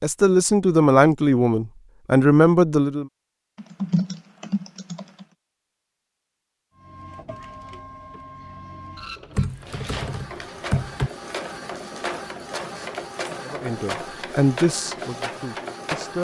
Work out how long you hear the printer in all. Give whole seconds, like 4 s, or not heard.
9 s.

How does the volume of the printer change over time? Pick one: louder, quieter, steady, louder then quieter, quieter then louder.
louder.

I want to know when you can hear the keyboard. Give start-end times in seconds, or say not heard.
3.5-5.2, 9.3-11.1.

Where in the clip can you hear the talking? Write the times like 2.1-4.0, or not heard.
0.0-3.0, 13.4-16.1.